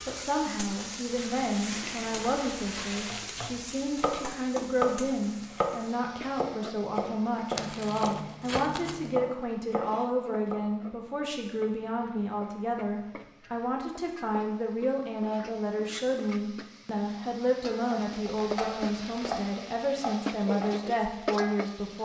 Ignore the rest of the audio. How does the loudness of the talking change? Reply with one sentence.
The loudness of the talking stays about the same.